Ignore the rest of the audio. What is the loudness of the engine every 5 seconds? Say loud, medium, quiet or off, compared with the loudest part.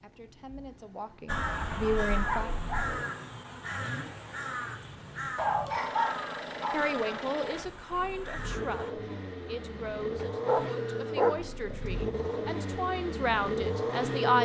quiet, medium, loud.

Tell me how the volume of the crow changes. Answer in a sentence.
The volume of the crow goes down.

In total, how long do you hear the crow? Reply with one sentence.
The crow can be heard for 8 seconds in total.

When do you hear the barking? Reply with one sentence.
The barking can be heard from 1.2 to 3.0 s, from 5.3 to 6.8 s and from 10.2 to 11.8 s.